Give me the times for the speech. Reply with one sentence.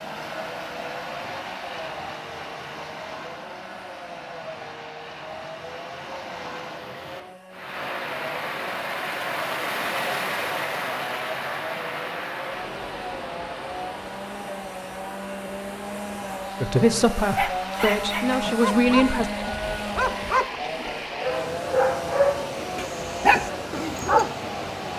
The speech can be heard from 16.6 to 19.2 s.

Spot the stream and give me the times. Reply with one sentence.
You can hear the stream from 0.0 to 24.9 s.